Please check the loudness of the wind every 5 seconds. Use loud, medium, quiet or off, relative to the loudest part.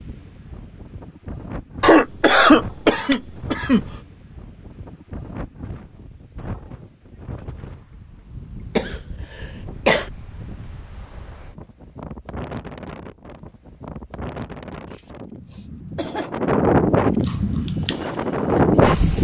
quiet, quiet, quiet, loud.